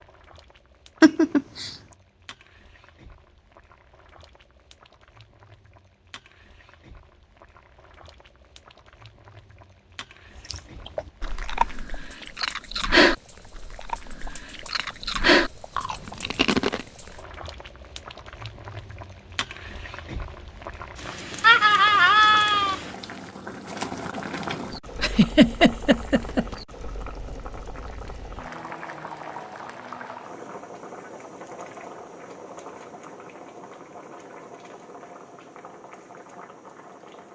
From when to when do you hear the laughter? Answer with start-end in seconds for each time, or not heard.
1.0-1.8, 21.4-22.8, 25.0-26.4.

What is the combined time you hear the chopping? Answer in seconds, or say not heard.
not heard.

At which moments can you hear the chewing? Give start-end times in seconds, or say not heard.
10.5-16.9.